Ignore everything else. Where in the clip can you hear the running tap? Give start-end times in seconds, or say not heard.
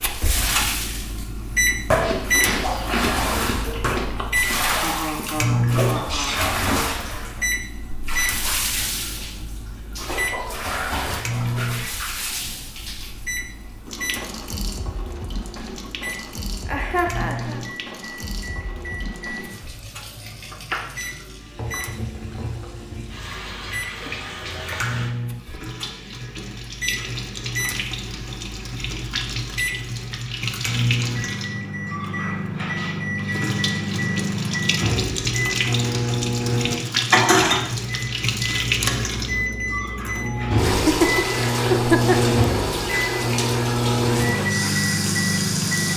0.1-45.9.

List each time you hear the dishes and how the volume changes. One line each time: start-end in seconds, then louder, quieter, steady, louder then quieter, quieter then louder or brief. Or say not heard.
not heard.